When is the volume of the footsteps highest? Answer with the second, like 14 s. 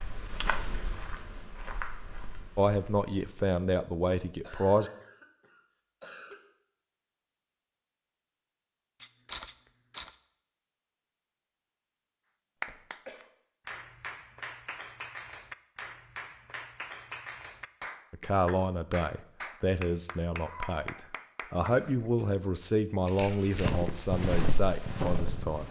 24 s.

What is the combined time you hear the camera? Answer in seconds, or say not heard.
2 s.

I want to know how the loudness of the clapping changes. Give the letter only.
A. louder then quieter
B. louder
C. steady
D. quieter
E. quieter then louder
C.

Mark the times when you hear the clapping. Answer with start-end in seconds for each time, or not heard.
12.6-21.8.